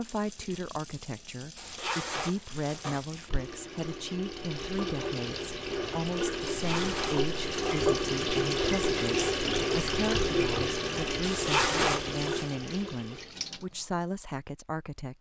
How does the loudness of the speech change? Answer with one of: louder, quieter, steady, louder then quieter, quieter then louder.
steady.